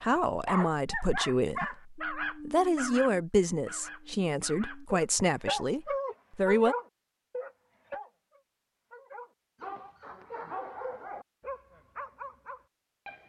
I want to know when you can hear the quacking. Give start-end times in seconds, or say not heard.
not heard.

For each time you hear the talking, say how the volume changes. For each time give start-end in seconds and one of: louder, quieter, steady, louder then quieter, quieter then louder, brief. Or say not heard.
0.0-6.8 steady.